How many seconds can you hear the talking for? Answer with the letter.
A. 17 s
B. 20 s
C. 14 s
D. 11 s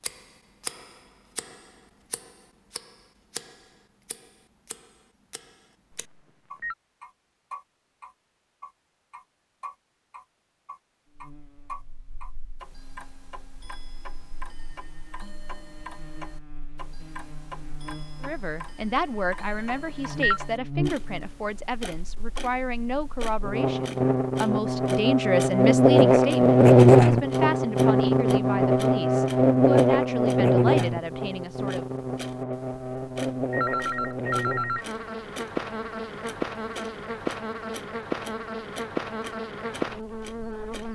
C.